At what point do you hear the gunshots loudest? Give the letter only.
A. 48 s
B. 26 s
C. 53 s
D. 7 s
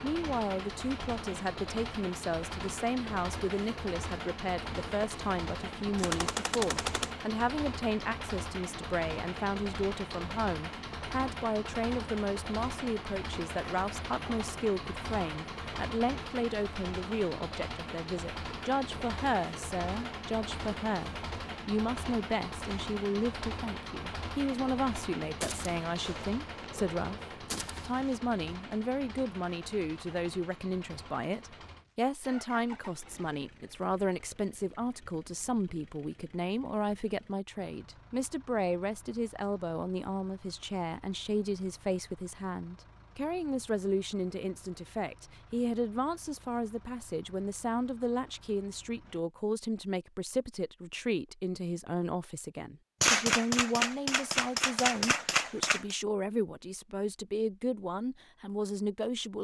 C.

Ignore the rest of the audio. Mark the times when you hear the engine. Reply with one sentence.
You can hear the engine from 0.0 to 49.2 s.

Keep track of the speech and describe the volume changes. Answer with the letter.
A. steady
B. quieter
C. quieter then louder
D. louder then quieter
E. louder
A.